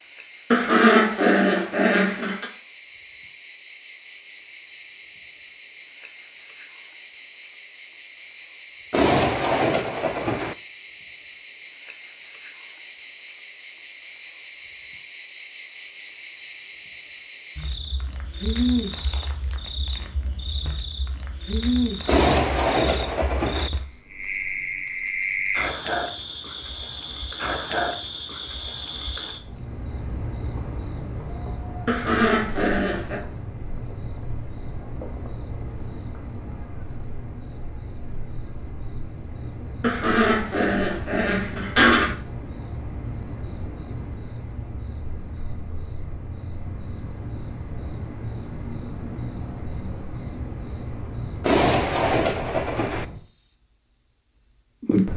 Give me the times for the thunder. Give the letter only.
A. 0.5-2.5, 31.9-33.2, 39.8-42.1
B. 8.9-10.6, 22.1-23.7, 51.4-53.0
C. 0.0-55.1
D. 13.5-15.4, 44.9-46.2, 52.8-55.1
B.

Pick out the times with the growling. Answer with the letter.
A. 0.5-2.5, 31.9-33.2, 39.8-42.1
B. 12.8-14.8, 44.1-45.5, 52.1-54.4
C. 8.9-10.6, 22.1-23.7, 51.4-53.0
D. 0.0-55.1
A.